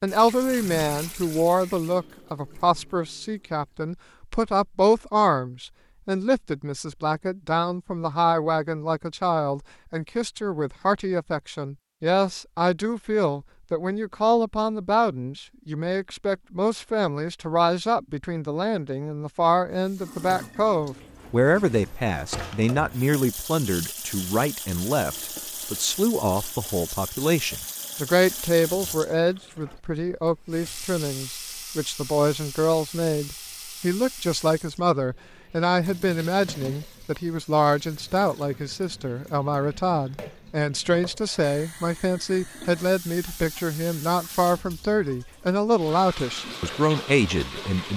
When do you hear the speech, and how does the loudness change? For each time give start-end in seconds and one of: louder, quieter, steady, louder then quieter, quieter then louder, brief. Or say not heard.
0.0-47.9 steady.